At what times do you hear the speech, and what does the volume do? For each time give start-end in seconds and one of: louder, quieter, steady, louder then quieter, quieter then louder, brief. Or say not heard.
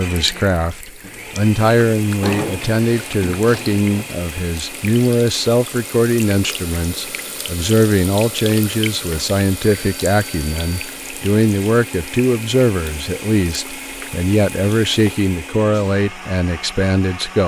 0.0-17.4 steady.